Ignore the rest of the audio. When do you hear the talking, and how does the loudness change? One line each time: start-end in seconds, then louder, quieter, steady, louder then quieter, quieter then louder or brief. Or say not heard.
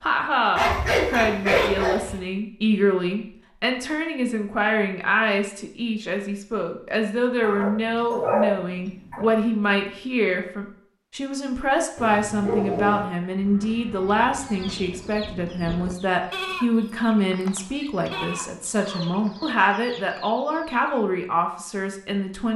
0.0-22.5 steady.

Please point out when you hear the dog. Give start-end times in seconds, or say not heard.
0.6-2.2, 7.4-9.3, 11.9-13.1, 17.6-19.6.